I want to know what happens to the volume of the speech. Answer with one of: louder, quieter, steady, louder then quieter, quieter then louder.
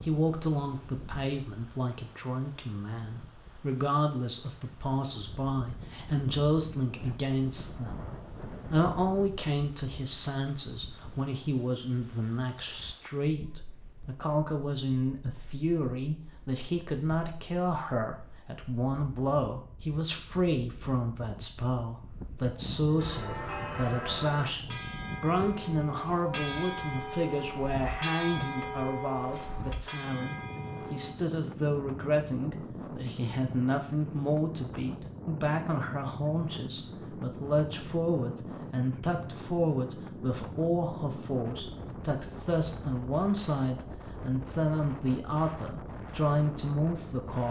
steady.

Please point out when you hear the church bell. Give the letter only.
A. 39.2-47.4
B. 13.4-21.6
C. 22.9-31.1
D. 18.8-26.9
C.